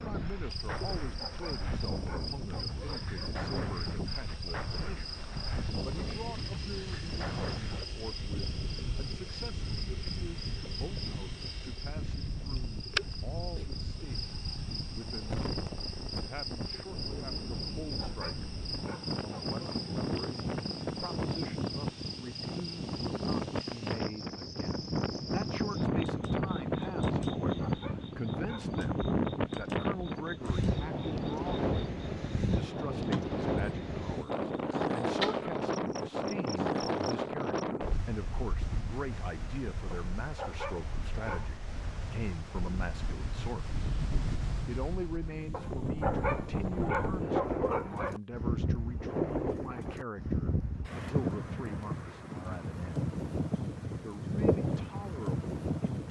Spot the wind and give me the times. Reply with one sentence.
The wind can be heard from 0.0 to 56.0 s.